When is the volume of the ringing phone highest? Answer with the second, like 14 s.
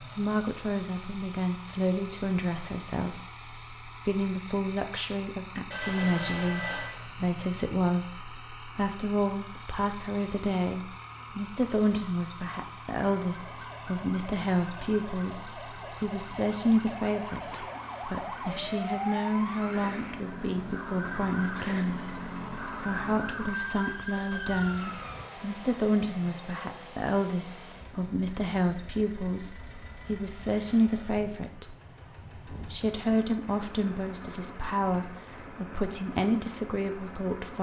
6 s.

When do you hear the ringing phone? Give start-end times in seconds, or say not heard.
5.7-7.7.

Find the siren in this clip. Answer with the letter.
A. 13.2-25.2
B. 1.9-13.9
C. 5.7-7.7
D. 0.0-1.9
A.